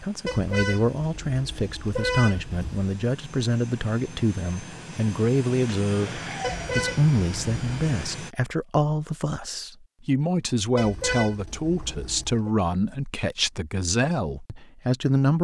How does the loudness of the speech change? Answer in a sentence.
The loudness of the speech stays about the same.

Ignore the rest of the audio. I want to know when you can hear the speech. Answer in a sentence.
The speech can be heard from 0.0 to 15.3 s.